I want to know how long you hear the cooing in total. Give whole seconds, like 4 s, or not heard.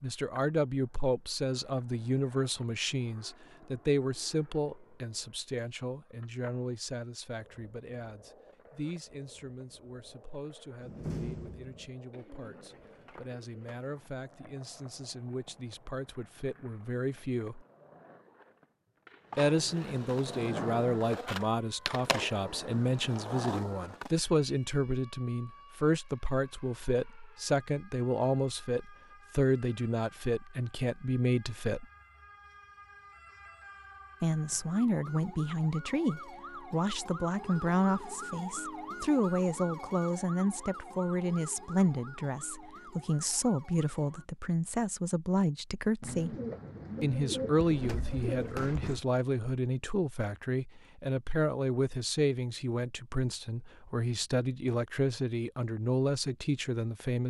5 s.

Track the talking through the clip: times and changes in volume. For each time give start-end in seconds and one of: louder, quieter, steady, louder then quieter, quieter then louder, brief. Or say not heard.
0.0-17.6 quieter then louder
19.4-31.9 steady
34.2-46.4 steady
47.0-57.2 steady.